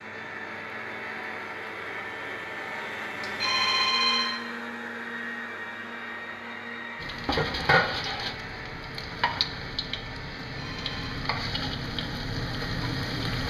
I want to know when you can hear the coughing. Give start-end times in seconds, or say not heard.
not heard.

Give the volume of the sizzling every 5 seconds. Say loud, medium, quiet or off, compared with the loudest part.
off, loud, loud.